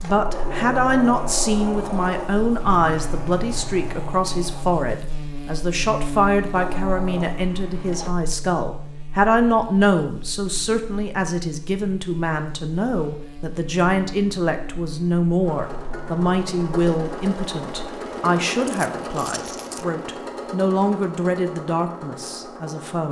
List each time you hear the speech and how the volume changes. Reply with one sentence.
The speech can be heard from 0.0 to 23.0 s, at a steady volume.